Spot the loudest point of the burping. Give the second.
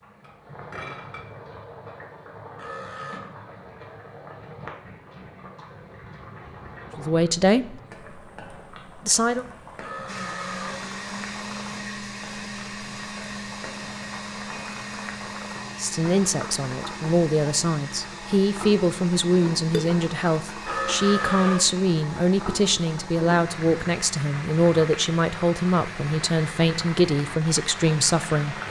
21 s.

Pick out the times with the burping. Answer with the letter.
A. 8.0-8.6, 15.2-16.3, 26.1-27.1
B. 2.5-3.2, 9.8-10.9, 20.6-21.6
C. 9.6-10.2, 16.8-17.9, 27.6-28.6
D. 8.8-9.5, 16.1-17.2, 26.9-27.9
B.